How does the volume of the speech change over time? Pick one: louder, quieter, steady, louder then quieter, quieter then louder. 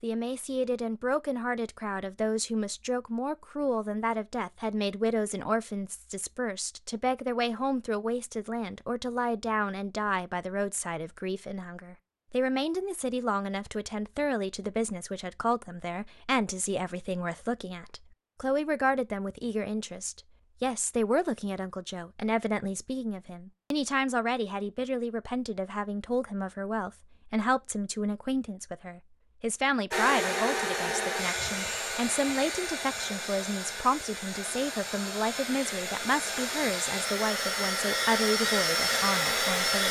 steady.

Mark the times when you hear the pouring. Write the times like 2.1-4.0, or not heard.
not heard.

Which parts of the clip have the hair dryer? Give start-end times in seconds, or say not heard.
29.9-39.8.